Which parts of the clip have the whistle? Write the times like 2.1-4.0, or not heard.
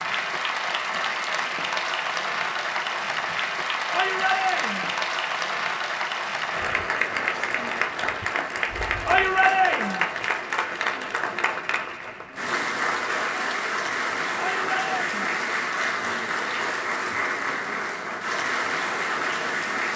not heard.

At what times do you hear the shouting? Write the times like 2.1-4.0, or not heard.
3.9-4.9, 9.1-10.1, 14.3-15.3.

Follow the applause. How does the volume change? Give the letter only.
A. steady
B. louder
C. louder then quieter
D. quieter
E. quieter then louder
A.